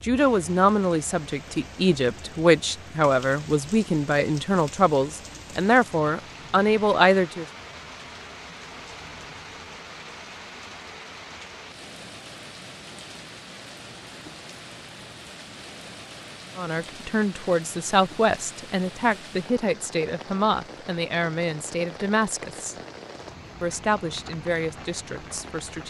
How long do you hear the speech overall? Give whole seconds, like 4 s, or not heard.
16 s.